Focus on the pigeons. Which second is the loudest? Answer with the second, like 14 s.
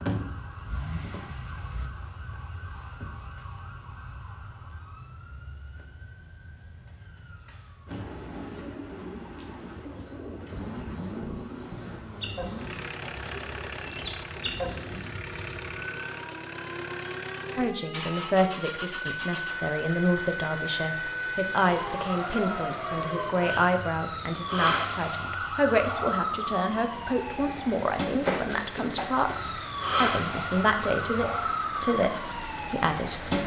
15 s.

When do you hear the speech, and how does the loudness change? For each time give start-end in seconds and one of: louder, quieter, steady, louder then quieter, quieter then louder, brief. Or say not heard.
17.6-33.4 steady.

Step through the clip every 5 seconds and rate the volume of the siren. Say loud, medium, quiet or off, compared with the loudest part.
medium, quiet, quiet, medium, loud, loud, loud.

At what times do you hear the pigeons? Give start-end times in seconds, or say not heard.
7.8-15.2.